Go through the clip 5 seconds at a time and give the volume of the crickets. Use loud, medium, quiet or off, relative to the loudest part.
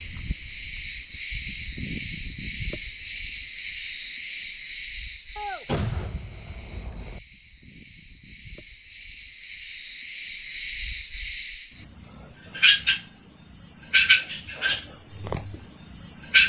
loud, medium, loud, loud.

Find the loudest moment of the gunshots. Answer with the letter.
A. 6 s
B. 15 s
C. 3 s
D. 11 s
A.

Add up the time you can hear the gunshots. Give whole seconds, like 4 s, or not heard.
2 s.